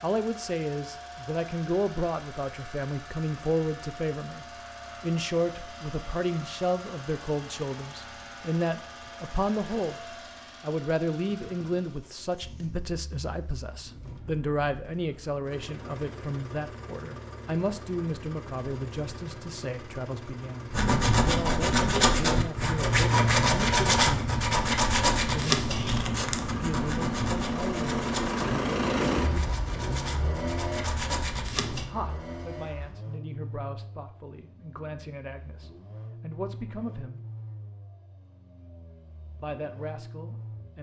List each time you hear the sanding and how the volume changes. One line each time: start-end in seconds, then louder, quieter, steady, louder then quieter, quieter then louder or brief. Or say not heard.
20.7-31.9 quieter.